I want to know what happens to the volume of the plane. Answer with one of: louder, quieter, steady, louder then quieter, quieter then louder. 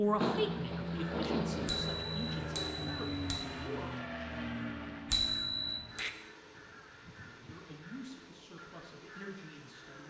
quieter.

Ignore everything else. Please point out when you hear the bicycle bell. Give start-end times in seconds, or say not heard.
1.6-3.5, 5.1-6.0.